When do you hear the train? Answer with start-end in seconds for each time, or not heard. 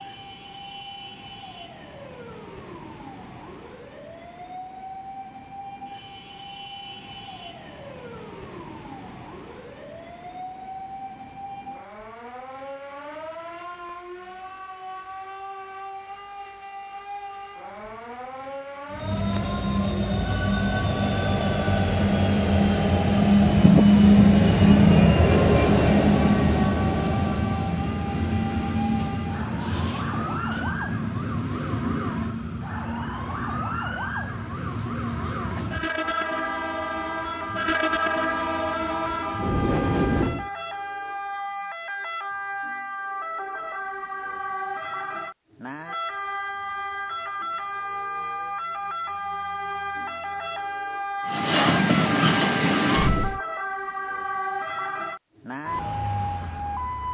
18.9-40.5, 51.2-53.4.